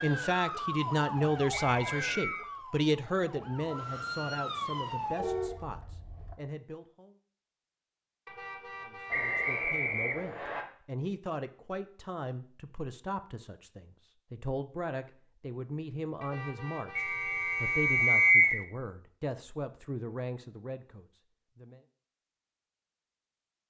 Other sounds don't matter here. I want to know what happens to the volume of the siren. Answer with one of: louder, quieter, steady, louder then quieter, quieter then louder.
quieter then louder.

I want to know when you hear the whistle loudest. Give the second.
18 s.